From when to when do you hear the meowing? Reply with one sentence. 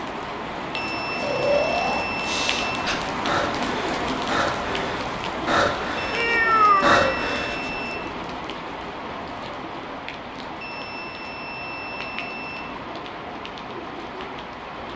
The meowing can be heard from 6.1 to 7.2 s.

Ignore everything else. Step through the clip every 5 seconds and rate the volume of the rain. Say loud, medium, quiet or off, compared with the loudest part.
loud, loud, medium.